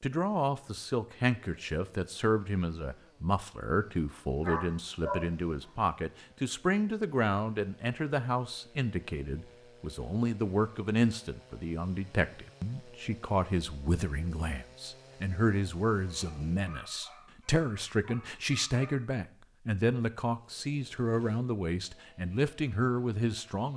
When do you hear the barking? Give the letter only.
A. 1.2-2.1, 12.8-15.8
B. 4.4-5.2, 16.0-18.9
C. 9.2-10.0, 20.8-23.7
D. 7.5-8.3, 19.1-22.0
B.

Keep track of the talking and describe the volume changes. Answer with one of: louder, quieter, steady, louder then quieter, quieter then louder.
steady.